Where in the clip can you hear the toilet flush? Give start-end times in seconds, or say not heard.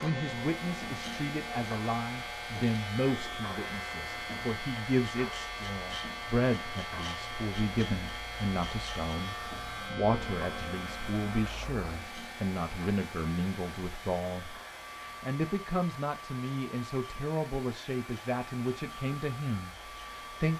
not heard.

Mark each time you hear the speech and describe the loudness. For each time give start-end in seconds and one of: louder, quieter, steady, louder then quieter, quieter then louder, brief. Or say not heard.
0.0-20.5 steady.